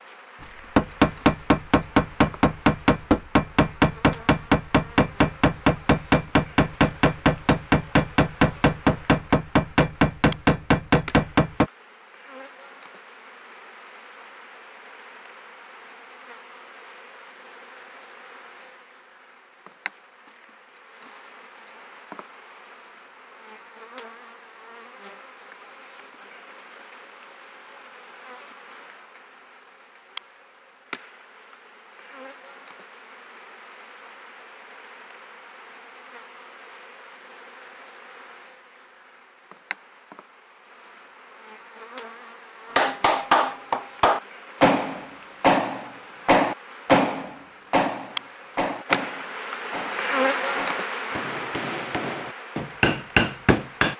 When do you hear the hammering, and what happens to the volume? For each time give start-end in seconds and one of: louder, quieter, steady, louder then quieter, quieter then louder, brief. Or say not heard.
0.8-11.7 steady
42.8-53.9 quieter then louder.